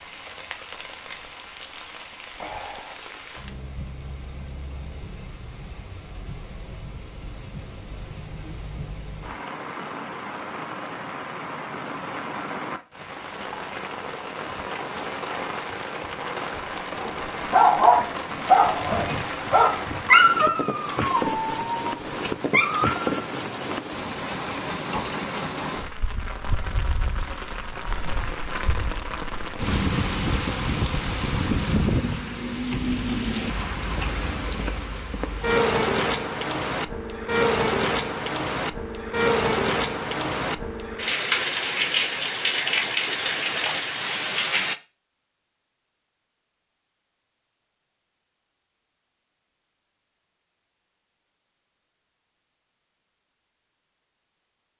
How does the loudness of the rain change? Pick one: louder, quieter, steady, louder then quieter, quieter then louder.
louder.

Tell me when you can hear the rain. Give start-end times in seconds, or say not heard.
0.0-44.8.